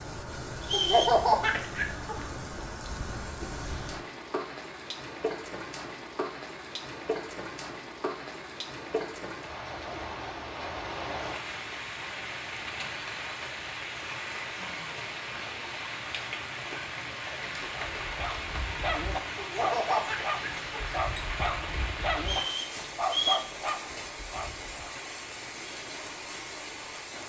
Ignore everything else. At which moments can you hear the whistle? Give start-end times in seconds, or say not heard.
0.6-1.2, 22.2-23.5.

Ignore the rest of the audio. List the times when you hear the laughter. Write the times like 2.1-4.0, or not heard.
0.7-2.1, 19.4-20.9.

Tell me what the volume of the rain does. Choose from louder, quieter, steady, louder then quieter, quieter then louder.
steady.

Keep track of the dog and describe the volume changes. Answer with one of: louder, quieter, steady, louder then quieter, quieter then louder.
steady.